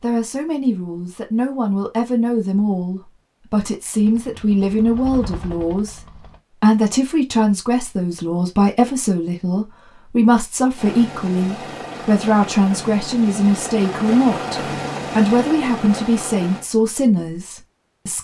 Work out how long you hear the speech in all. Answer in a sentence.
The speech can be heard for 18 seconds in total.